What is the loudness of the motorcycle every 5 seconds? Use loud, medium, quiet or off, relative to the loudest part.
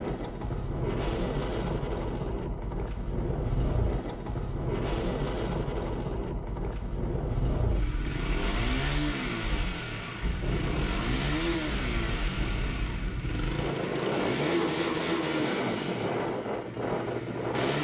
medium, loud, loud, loud.